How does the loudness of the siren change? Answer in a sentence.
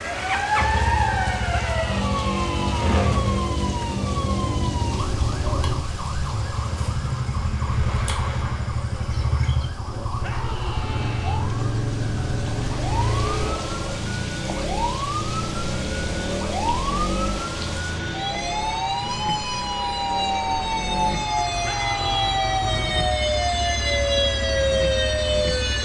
The volume of the siren goes down, then up.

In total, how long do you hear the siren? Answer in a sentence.
The siren can be heard for 26 seconds in total.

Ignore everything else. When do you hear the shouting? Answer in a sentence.
You can hear the shouting from 1.5 to 3.0 s, from 10.2 to 11.4 s and from 21.6 to 22.4 s.